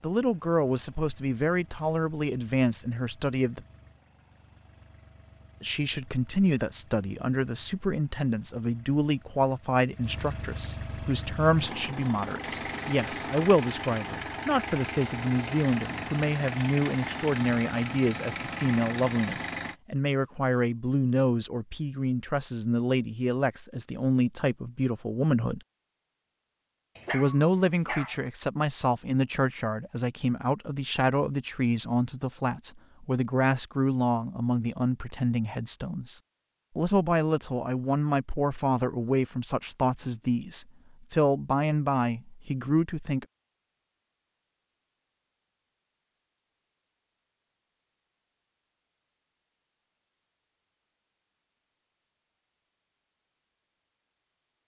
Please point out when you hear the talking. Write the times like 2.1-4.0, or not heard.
0.0-3.6, 5.6-25.6, 27.1-43.2.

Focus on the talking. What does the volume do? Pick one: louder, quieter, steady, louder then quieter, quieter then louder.
steady.